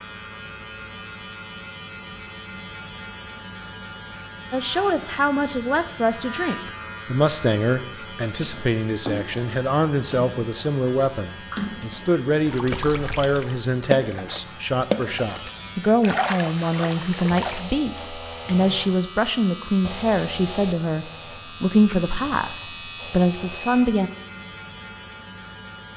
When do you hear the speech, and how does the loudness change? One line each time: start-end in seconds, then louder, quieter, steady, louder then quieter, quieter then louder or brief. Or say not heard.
4.5-24.1 steady.